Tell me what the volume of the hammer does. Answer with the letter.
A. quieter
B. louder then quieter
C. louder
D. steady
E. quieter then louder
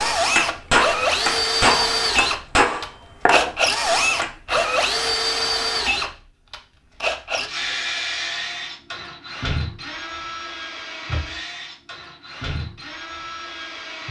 A.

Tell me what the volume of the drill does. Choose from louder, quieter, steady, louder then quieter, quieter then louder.
quieter.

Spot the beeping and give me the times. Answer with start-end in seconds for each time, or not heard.
not heard.